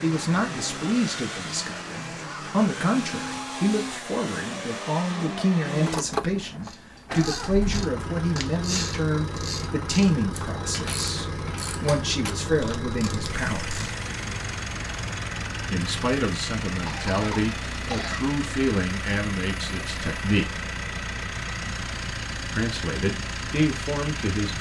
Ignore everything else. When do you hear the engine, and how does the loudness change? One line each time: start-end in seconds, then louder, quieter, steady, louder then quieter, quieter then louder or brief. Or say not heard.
0.0-24.5 steady.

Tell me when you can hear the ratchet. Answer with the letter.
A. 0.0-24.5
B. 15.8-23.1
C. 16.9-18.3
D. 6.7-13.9
D.